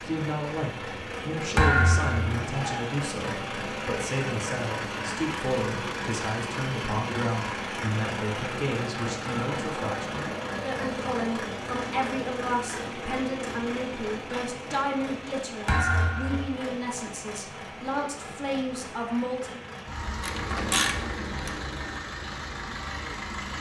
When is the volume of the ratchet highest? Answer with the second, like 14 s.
21 s.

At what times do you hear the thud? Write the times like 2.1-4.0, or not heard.
1.6-2.4, 15.7-16.6.